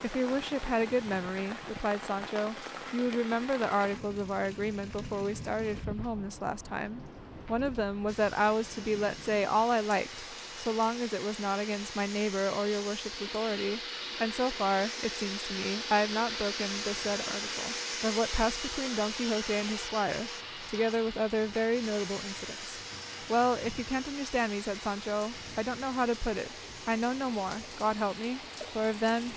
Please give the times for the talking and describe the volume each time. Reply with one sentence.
The talking can be heard from 0.0 to 29.3 s, at a steady volume.